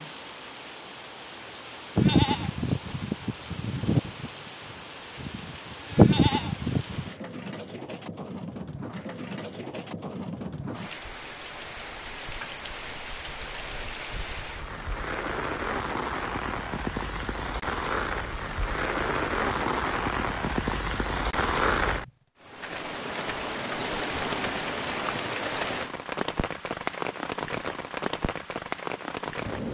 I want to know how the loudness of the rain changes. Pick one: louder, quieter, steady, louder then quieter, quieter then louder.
louder.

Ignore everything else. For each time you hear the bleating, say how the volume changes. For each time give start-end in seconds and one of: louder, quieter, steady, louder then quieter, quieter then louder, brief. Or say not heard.
1.9-7.1 quieter then louder.